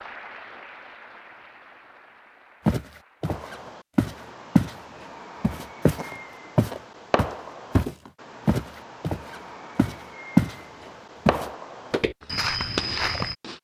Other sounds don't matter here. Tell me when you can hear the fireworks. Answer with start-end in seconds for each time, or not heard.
3.2-13.5.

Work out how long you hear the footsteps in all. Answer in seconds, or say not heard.
9 s.